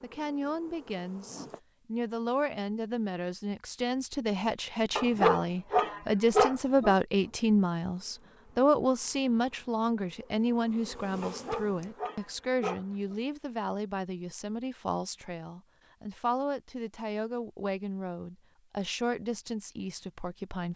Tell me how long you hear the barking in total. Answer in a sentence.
The barking can be heard for 4 seconds in total.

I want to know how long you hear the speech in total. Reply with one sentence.
You can hear the speech for 21 seconds altogether.